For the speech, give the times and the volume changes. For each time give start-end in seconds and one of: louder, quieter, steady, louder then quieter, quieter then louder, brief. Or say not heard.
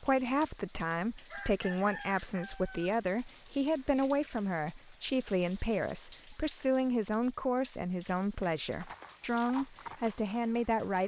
0.0-11.0 steady.